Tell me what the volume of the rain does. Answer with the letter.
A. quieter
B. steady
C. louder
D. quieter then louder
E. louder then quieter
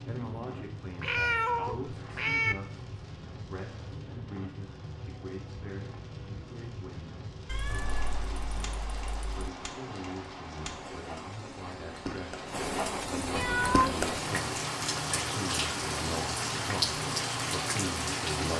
C.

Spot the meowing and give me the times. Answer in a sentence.
You can hear the meowing from 1.0 to 2.5 s, from 7.5 to 9.5 s and from 13.3 to 13.9 s.